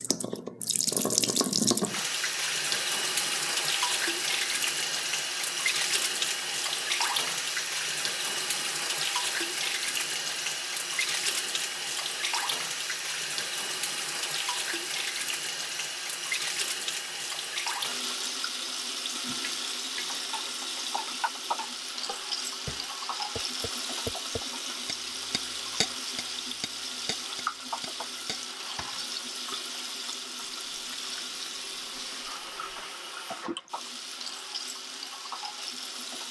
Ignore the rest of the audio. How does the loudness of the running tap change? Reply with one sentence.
The volume of the running tap goes down.